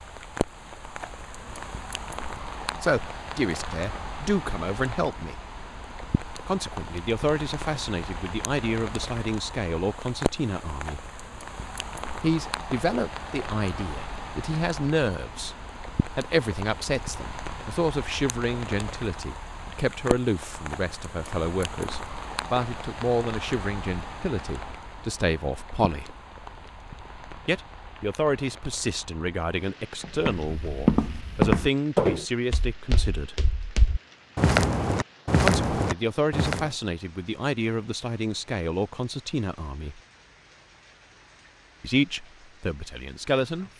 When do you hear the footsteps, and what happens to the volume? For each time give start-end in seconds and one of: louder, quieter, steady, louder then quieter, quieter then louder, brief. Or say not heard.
30.0-36.7 quieter then louder.